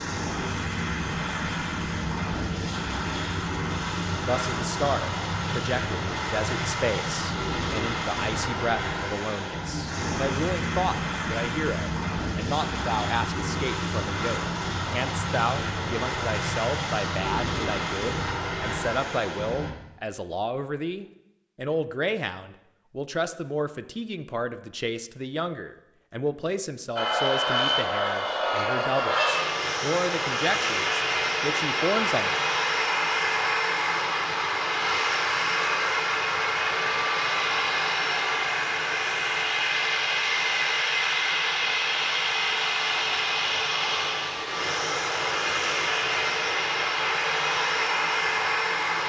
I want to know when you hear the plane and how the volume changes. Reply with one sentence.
The plane can be heard from 0.0 to 19.8 s, at a steady volume; and from 26.9 to 49.0 s, at a steady volume.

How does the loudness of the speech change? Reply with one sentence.
The volume of the speech stays about the same.